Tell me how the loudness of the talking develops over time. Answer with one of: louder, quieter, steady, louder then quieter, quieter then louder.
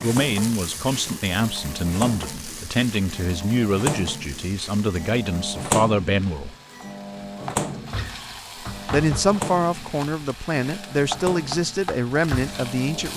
steady.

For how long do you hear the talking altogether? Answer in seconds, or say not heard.
11 s.